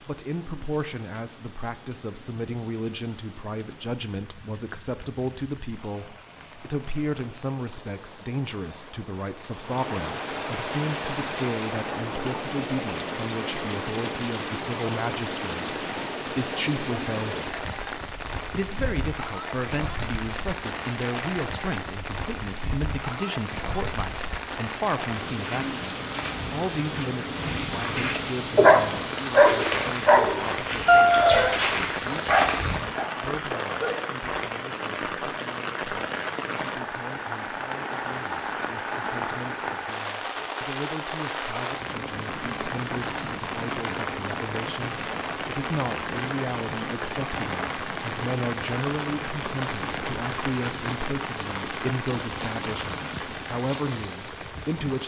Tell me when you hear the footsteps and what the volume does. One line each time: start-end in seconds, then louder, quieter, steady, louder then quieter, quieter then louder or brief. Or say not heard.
25.4-32.8 louder.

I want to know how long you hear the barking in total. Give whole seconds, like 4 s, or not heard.
6 s.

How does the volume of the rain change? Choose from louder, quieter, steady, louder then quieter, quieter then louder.
louder.